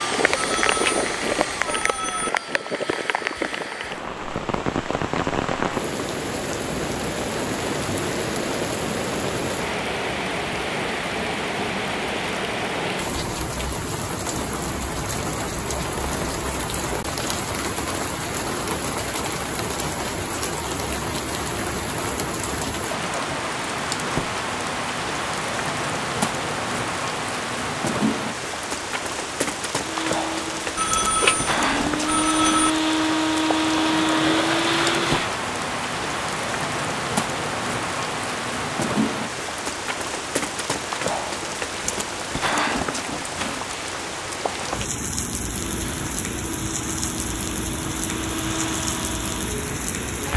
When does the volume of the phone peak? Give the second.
31 s.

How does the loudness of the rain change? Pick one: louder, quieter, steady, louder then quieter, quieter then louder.
steady.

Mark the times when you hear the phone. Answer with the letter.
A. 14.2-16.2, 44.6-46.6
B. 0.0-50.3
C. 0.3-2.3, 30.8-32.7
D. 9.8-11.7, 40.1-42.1
C.